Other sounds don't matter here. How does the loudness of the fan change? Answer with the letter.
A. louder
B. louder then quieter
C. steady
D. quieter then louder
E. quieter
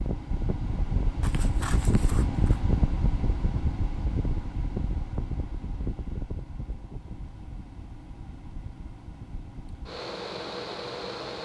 D.